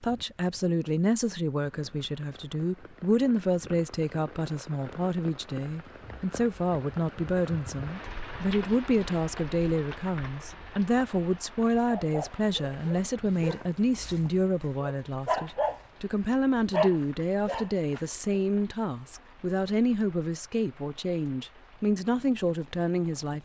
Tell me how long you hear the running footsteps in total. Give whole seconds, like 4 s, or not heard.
not heard.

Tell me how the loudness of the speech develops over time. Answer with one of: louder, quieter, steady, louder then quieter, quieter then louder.
steady.